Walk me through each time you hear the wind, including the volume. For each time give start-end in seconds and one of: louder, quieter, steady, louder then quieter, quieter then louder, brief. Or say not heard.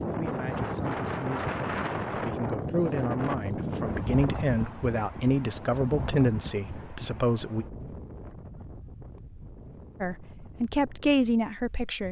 0.0-12.0 quieter.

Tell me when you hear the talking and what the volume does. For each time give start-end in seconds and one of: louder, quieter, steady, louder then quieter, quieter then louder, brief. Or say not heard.
0.0-7.7 louder
10.0-12.0 brief.